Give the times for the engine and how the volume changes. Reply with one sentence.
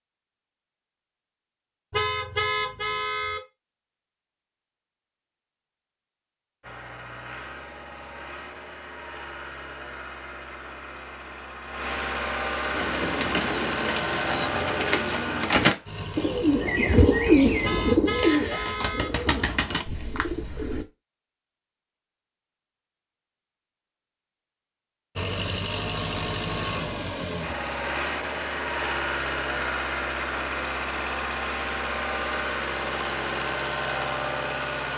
You can hear the engine from 6.6 to 17.8 s, getting louder then quieter; and from 25.1 to 34.9 s, at a steady volume.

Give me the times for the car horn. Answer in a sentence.
You can hear the car horn from 1.9 to 3.4 s and from 17.6 to 19.1 s.